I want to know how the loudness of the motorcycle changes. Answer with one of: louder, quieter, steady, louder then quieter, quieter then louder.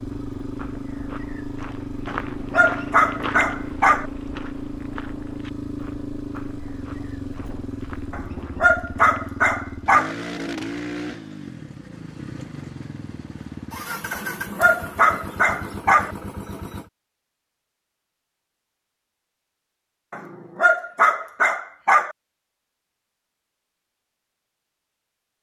steady.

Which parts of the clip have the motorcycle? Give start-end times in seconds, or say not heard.
0.0-16.9.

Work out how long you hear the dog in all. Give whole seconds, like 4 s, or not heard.
8 s.